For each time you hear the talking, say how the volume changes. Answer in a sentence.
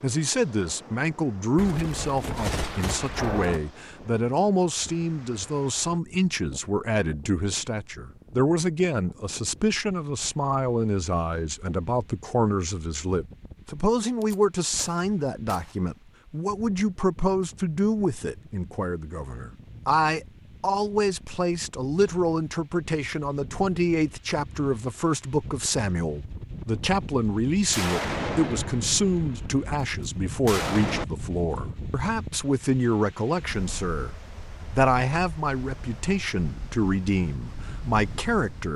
You can hear the talking from 0.0 to 38.7 s, at a steady volume.